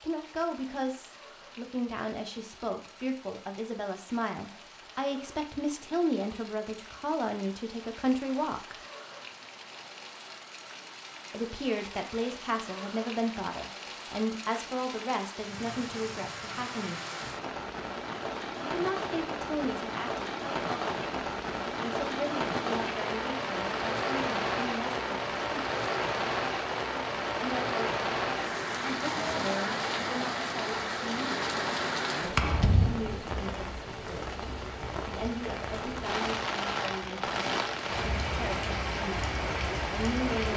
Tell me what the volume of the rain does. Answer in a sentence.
The volume of the rain goes up.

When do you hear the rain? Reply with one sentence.
The rain can be heard from 0.0 to 40.5 s.